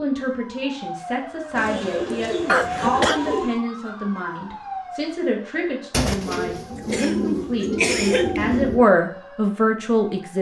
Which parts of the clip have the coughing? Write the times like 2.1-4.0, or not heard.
2.5-3.2, 6.8-8.4.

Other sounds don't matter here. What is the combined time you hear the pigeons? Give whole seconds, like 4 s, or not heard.
5 s.